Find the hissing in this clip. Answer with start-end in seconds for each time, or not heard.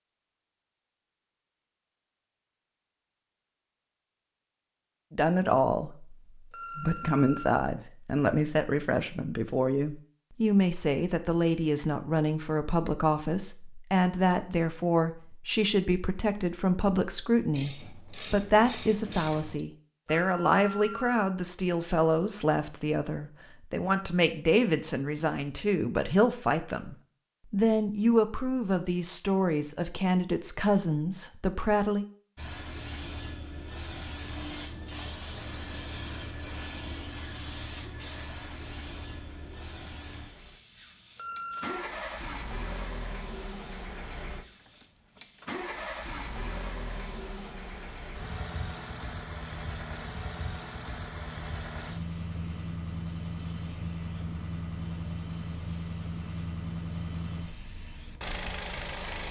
32.4-59.2.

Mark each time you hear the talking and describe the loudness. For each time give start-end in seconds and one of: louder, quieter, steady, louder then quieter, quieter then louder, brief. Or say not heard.
5.1-6.2 brief
6.8-32.0 steady.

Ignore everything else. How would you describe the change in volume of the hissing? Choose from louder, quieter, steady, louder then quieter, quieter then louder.
quieter.